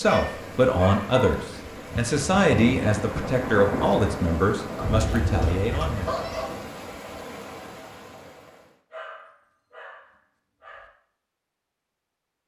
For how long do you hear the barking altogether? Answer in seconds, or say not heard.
5 s.